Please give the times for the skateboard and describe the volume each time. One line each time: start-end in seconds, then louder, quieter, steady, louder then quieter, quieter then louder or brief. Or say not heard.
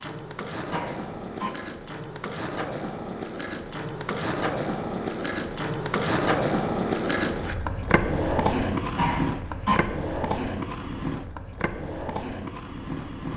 0.0-13.3 louder then quieter.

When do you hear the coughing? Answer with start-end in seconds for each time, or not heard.
0.7-1.5, 8.9-9.8.